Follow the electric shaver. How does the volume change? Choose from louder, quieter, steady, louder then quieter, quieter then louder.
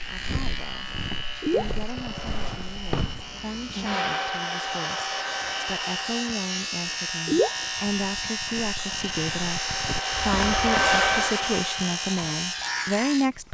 louder.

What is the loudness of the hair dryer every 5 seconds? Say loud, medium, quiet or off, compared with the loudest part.
medium, medium, loud.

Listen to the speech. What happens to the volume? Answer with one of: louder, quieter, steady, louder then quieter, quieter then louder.
louder.